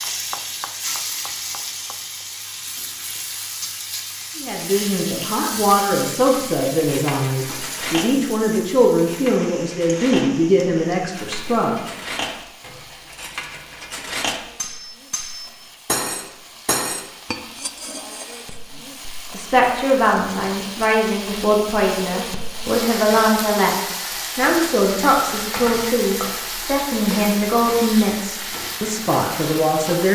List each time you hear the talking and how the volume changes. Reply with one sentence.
You can hear the talking from 4.3 to 11.8 s, at a steady volume; and from 19.3 to 30.0 s, at a steady volume.